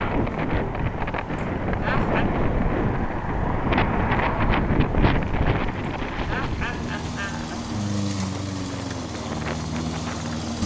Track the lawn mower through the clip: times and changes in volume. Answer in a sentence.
You can hear the lawn mower from 0.0 to 10.6 s, getting louder.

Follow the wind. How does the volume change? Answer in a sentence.
The volume of the wind goes down.